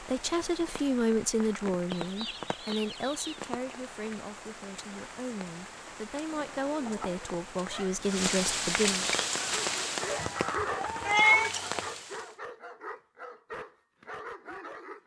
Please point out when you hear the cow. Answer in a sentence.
The cow can't be heard in this clip.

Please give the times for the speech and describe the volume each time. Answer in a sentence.
You can hear the speech from 0.0 to 9.1 s, getting quieter then louder.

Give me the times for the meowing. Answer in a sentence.
You can hear the meowing from 10.2 to 11.5 s.